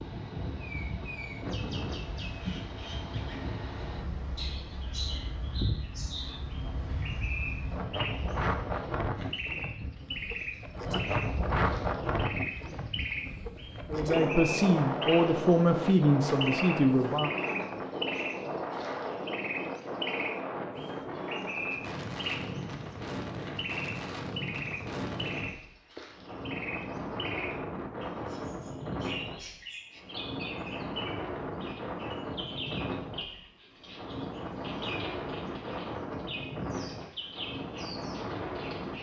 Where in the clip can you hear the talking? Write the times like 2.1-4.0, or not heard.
13.9-17.4.